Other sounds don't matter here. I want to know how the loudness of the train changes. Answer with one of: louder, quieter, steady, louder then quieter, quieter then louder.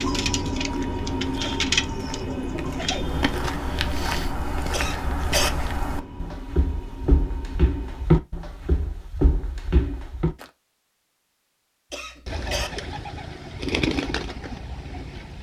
quieter.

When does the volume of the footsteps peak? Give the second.
8 s.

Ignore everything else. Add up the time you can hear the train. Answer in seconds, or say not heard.
8 s.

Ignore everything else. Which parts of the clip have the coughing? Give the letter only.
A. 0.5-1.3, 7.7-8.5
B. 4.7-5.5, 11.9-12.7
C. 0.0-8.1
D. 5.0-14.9
B.